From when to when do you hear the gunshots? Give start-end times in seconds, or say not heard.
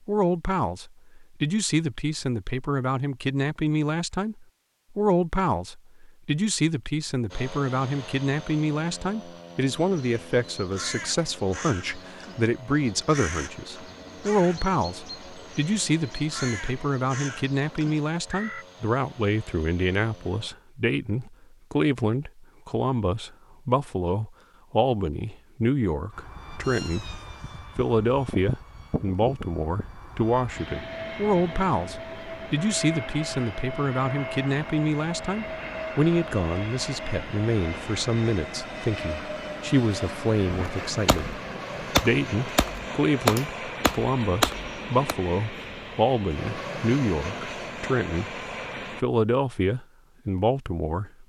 40.5-45.1.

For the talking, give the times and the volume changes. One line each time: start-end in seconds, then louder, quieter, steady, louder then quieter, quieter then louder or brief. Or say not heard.
0.1-27.1 steady
27.8-48.4 steady
49.0-51.2 brief.